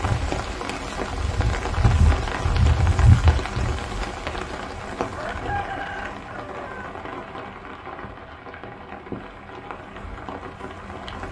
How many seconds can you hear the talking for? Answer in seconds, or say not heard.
not heard.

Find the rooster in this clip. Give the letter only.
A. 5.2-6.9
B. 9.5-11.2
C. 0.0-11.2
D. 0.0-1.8
A.